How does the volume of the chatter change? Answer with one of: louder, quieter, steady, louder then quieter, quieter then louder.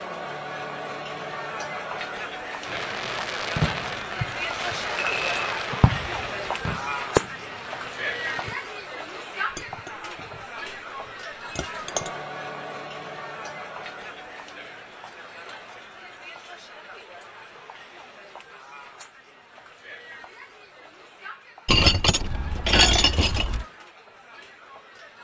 quieter.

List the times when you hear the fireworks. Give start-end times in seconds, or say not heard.
2.6-8.6.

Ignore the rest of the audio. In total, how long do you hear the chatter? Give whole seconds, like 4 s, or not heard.
25 s.